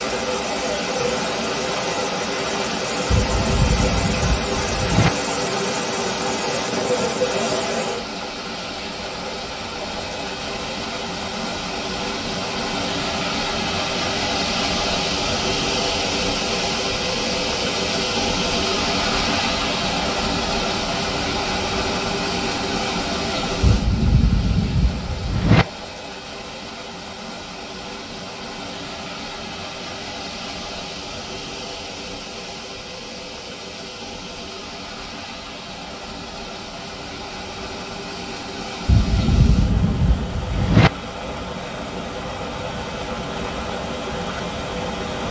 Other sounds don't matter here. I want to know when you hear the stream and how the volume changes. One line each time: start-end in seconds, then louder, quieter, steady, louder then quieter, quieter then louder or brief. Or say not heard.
0.0-45.2 quieter.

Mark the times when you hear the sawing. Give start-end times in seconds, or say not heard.
not heard.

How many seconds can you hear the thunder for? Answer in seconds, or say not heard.
6 s.